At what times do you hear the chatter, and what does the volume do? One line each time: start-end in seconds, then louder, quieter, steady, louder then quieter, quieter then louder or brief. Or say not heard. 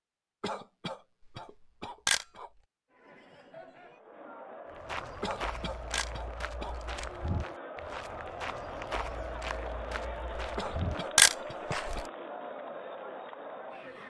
2.9-14.0 louder.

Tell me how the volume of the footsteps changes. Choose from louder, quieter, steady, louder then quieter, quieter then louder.
steady.